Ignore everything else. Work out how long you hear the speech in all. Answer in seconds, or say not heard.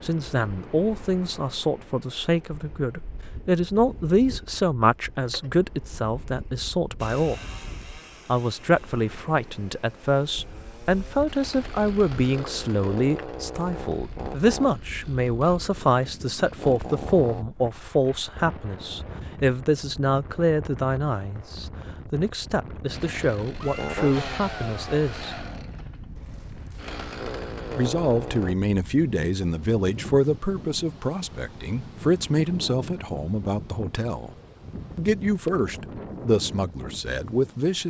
34 s.